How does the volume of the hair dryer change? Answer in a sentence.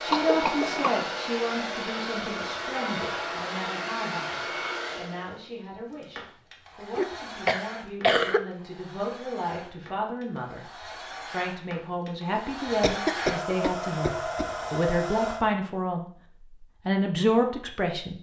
The loudness of the hair dryer goes down, then up.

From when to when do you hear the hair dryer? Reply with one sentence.
You can hear the hair dryer from 0.0 to 15.4 s.